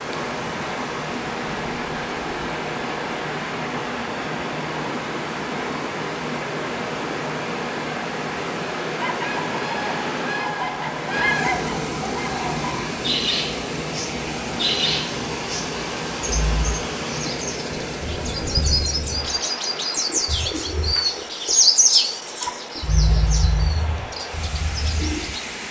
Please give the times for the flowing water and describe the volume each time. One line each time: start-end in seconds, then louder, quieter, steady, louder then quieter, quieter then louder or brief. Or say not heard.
0.0-25.6 quieter.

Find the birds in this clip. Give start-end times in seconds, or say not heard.
8.9-25.4.